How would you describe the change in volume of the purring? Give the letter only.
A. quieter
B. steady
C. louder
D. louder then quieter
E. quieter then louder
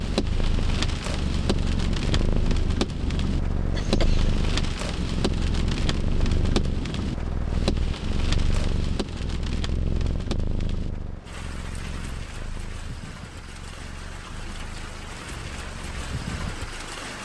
A.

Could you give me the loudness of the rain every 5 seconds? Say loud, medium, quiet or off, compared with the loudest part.
loud, loud, medium, medium.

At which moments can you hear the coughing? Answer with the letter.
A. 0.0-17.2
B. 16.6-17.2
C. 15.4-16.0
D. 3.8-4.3
D.